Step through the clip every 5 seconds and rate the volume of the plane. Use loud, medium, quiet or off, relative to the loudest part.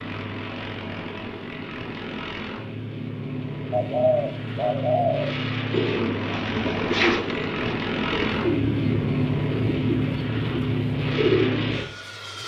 medium, loud, loud.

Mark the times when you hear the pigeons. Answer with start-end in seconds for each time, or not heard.
3.7-11.8.